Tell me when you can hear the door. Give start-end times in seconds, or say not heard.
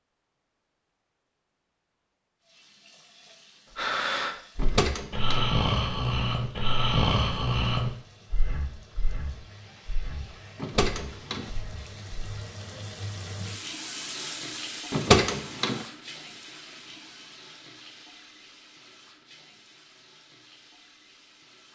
4.5-5.5, 10.6-11.5, 14.9-15.8.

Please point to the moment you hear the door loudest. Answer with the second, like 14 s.
15 s.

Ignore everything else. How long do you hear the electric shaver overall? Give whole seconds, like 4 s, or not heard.
not heard.